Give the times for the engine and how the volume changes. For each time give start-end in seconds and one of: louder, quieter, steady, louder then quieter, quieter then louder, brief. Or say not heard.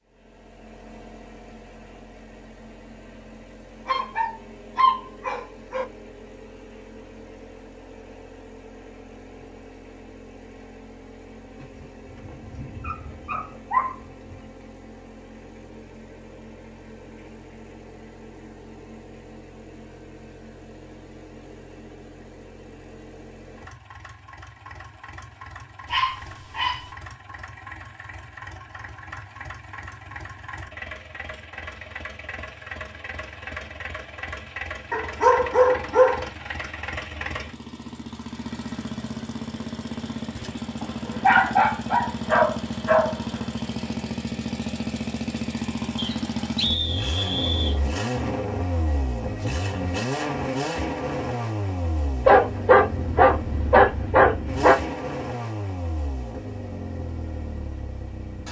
0.0-58.4 louder.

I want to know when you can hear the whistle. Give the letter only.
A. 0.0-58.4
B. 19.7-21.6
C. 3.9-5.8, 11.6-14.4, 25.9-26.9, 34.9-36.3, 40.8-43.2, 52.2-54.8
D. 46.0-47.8
D.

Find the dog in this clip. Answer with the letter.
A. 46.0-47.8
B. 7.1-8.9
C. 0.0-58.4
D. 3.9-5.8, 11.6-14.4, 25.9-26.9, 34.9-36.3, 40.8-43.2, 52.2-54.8
D.